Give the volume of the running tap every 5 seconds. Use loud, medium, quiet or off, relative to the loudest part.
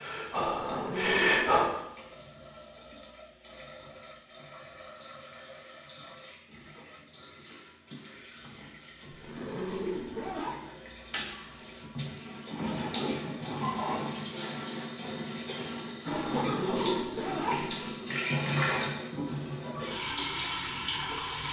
quiet, quiet, loud, loud, loud.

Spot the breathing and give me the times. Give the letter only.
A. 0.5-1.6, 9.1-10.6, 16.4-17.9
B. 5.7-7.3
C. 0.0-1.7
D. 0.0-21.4
C.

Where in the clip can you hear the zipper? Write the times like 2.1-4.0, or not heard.
0.5-1.6, 9.1-10.6, 16.4-17.9.